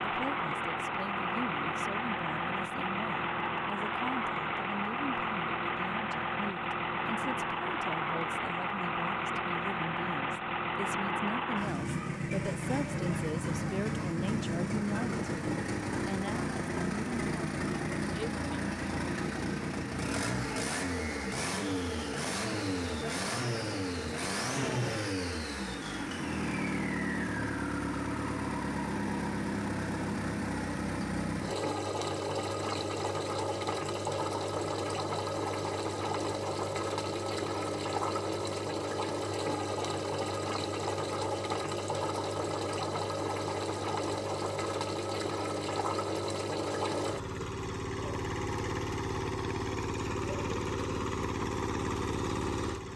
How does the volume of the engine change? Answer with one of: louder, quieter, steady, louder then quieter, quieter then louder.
steady.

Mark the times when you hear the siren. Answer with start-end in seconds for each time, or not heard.
not heard.